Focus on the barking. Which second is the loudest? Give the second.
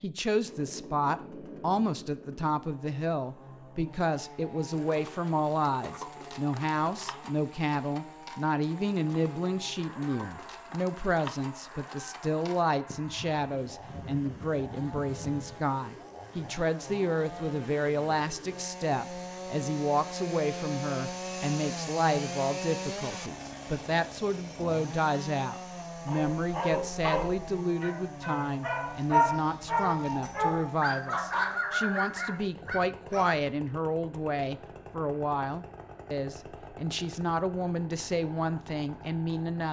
29 s.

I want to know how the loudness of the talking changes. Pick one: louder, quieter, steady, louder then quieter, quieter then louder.
steady.